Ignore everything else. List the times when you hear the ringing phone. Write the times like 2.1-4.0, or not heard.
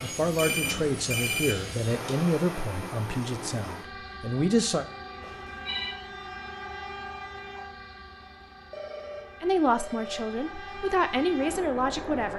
0.3-2.1, 5.2-6.0, 8.7-10.2.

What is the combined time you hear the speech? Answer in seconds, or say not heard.
8 s.